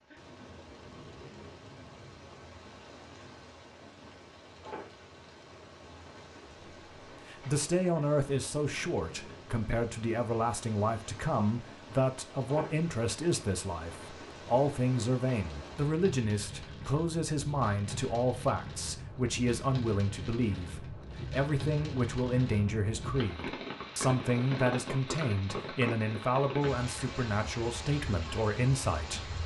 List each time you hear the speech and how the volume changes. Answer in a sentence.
You can hear the speech from 7.2 to 29.4 s, at a steady volume.